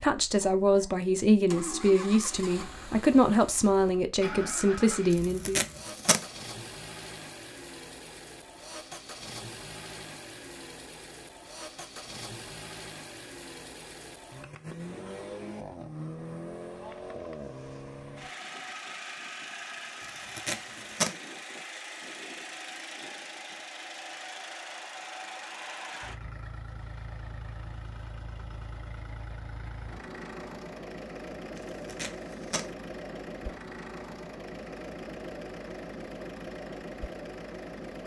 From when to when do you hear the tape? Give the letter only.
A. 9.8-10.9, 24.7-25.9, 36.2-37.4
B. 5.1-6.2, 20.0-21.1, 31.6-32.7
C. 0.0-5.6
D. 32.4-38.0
B.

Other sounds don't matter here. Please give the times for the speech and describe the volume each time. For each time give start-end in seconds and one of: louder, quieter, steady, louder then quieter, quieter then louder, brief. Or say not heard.
0.0-5.6 steady.